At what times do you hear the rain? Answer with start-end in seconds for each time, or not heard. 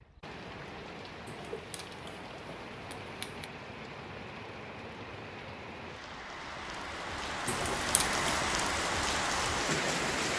0.0-10.3.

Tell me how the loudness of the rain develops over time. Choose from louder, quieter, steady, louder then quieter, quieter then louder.
louder.